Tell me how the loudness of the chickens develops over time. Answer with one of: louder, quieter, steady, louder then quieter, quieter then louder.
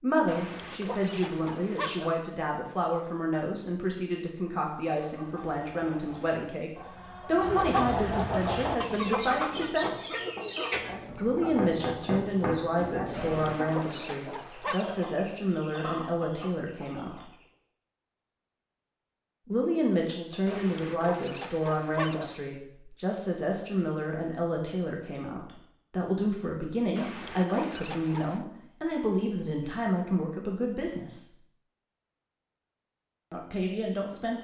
louder then quieter.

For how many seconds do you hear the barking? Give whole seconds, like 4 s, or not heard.
7 s.